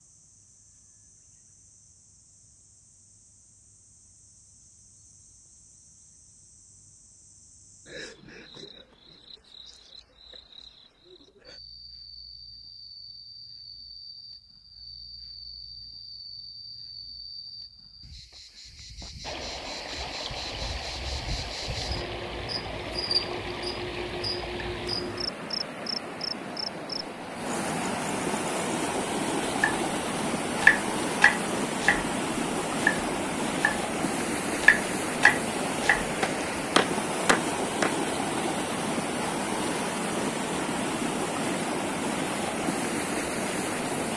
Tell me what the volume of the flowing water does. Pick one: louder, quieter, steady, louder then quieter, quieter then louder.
louder.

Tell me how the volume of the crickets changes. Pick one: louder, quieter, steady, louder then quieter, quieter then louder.
louder.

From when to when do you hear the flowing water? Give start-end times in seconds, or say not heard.
19.2-44.1.